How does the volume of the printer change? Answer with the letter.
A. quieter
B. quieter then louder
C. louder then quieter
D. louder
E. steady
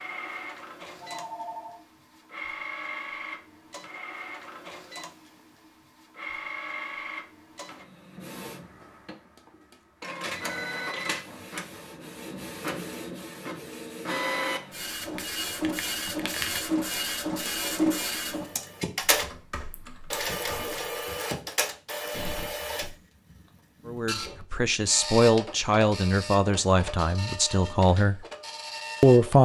C.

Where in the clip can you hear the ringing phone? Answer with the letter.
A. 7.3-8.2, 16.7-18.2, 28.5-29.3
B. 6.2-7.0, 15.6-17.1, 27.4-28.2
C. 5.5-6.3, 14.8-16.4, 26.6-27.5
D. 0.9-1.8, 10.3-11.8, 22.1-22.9
D.